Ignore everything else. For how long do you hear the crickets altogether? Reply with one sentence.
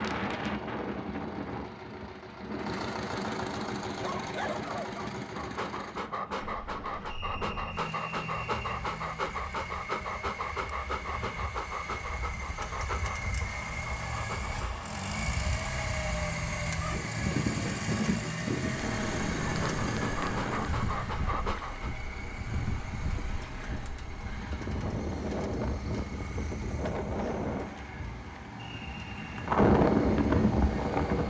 The crickets can't be heard in this clip.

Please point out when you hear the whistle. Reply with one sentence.
You can hear the whistle from 7.0 to 8.8 s and from 28.6 to 29.4 s.